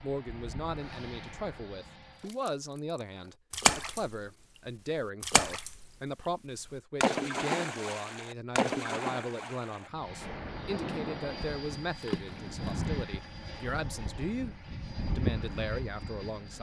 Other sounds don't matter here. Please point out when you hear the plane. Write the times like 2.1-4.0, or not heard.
0.0-2.4, 9.8-16.5.